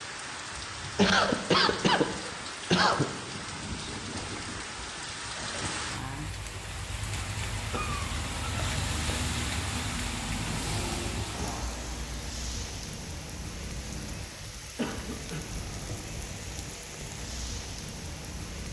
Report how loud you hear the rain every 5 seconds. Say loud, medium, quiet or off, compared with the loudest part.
loud, loud, loud, medium.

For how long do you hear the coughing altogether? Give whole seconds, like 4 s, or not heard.
4 s.